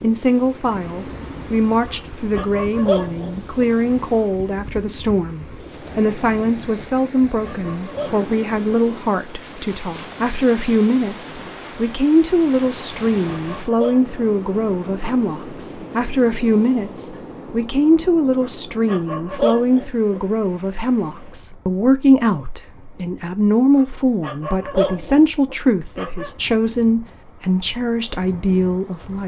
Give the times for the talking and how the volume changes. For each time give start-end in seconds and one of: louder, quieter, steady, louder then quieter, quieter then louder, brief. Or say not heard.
0.0-29.2 steady.